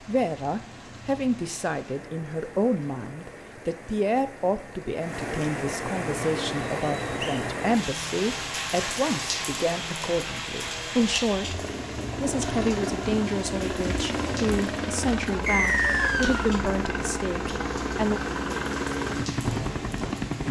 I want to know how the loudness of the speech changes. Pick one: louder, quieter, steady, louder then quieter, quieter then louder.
steady.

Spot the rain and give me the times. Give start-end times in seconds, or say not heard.
0.0-20.4.